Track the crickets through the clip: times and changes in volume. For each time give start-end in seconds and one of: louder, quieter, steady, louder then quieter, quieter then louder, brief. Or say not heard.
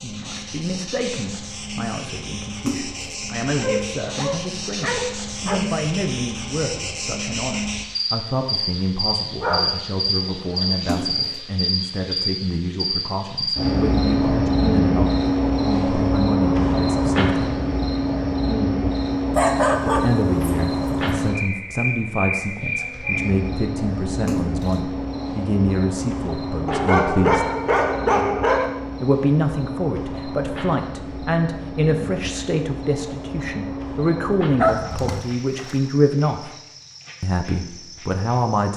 0.0-38.7 louder then quieter.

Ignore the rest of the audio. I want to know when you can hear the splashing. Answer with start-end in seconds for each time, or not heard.
2.6-3.2, 10.8-11.4, 24.2-24.8, 35.0-35.9.